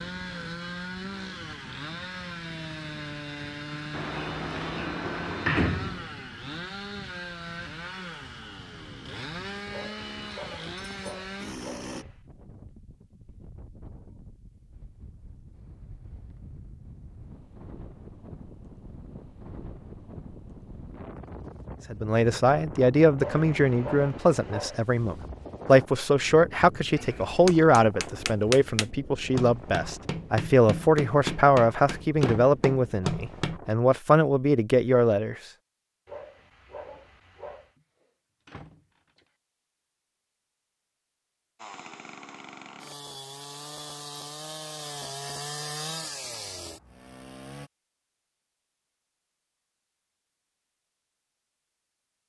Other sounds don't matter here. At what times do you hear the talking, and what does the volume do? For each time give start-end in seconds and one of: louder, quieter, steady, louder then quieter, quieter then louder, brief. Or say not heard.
21.9-35.4 steady.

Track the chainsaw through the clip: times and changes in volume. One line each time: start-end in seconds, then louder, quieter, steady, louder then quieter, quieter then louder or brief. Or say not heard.
0.0-12.1 steady
41.5-47.7 louder then quieter.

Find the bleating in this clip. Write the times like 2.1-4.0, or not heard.
not heard.